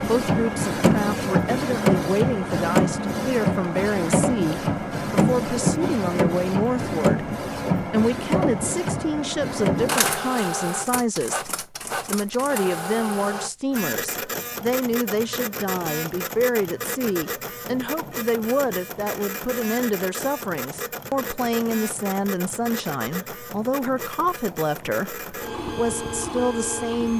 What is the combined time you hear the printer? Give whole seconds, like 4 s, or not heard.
27 s.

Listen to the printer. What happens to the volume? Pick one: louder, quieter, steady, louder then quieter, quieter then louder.
quieter.